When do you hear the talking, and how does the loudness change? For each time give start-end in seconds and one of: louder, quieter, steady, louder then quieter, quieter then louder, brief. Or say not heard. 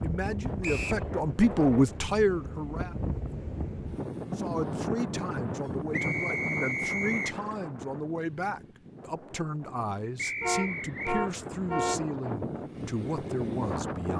0.0-3.0 brief
4.3-14.1 steady.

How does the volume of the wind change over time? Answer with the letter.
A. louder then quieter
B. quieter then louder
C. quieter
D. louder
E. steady
B.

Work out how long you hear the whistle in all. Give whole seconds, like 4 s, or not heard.
3 s.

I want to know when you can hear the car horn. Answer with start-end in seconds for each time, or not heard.
10.4-12.1.